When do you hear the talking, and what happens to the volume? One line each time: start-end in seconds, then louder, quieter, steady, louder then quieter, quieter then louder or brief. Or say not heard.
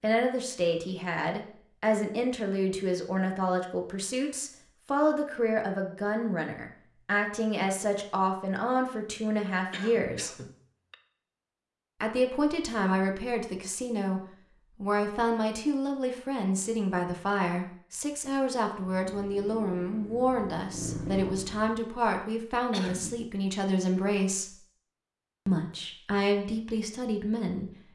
0.0-10.3 steady
12.0-24.6 steady
25.4-27.9 brief.